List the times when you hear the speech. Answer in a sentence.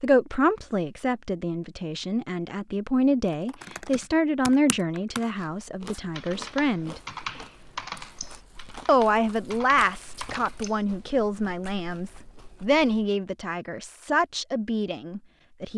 The speech can be heard from 0.0 to 7.0 s and from 8.8 to 15.7 s.